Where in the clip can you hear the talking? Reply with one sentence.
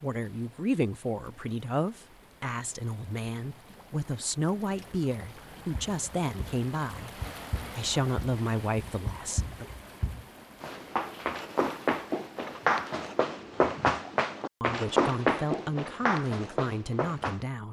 You can hear the talking from 0.0 to 7.1 s, from 7.8 to 9.8 s and from 14.6 to 17.6 s.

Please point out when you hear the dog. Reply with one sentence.
The dog can't be heard in this clip.